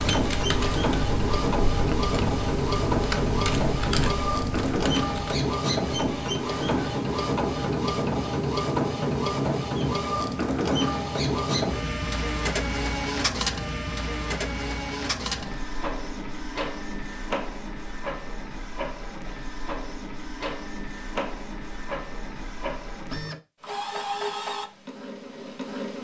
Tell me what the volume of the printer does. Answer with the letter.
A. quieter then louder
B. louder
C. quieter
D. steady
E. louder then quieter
C.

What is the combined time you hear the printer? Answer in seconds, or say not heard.
26 s.